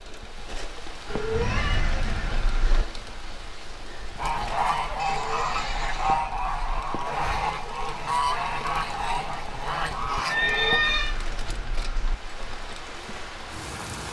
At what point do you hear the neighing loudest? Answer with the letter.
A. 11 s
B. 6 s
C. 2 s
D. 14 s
A.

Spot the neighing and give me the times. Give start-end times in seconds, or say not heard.
1.3-2.4, 5.0-6.2, 10.2-11.2.